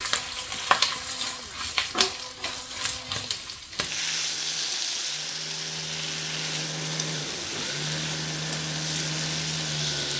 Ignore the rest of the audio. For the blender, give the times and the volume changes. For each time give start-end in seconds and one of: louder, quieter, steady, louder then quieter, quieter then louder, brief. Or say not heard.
0.0-10.1 louder.